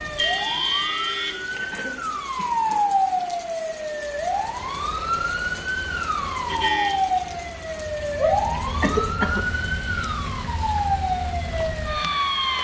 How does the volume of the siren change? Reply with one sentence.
The loudness of the siren stays about the same.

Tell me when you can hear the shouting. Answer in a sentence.
You can hear the shouting from 8.2 to 8.8 s.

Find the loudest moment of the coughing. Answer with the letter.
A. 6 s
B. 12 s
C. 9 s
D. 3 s
C.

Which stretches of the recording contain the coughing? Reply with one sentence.
You can hear the coughing from 1.5 to 2.8 s and from 8.8 to 9.4 s.